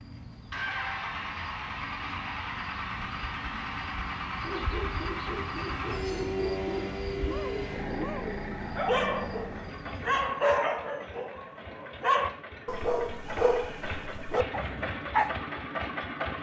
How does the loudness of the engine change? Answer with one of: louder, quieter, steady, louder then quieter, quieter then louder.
quieter then louder.